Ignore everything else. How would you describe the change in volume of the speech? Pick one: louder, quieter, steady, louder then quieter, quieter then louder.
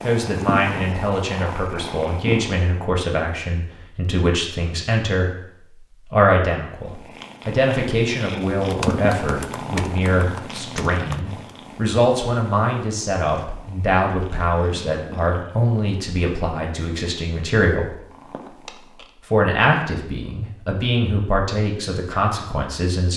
steady.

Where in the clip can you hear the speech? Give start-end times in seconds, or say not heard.
0.0-17.9, 19.3-23.1.